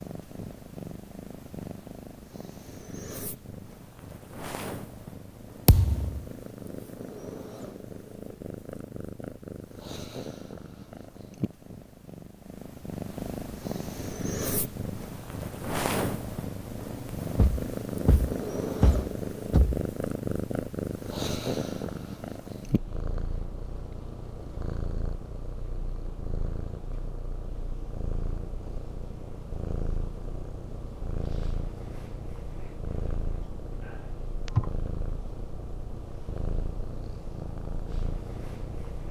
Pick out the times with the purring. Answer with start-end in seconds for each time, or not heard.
0.0-39.0.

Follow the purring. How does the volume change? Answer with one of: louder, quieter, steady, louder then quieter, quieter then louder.
louder then quieter.